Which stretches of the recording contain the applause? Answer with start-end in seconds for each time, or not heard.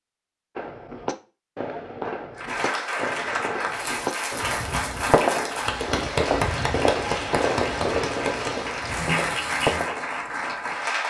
2.4-11.0.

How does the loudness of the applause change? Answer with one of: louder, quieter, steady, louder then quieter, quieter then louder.
steady.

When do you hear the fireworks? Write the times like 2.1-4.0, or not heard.
0.6-10.2.